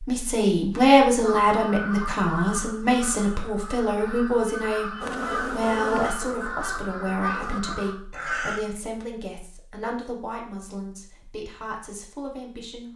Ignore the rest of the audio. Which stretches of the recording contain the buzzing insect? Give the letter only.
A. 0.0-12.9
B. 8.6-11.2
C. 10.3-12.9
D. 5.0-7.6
D.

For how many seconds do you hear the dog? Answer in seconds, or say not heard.
not heard.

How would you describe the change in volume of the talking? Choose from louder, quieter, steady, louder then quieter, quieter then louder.
quieter.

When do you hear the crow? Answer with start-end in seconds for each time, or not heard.
1.2-8.6.